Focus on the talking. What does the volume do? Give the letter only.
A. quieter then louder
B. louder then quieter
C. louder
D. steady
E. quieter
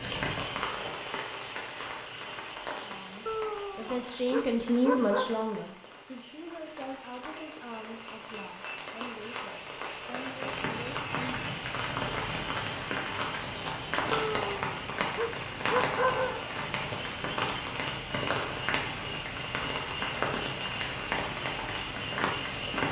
E.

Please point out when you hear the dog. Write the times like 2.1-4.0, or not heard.
3.2-5.3, 14.1-16.4.